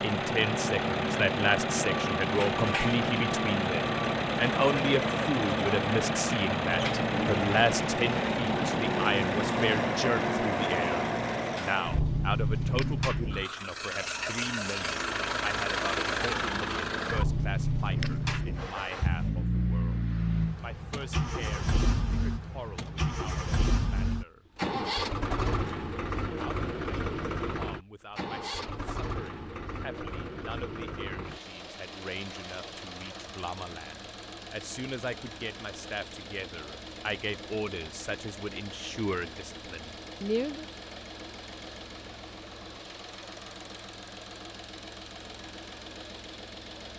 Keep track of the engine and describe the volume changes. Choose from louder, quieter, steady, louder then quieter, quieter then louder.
quieter.